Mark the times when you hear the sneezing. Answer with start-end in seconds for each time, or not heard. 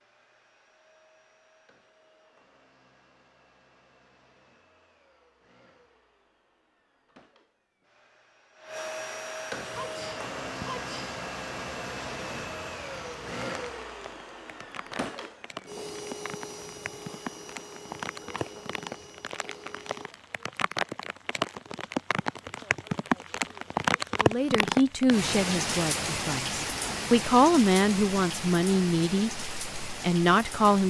9.7-11.2, 18.2-18.8.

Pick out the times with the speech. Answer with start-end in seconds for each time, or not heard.
24.2-30.8.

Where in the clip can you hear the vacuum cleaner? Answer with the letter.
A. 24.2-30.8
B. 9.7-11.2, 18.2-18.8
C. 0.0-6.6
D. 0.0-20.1
D.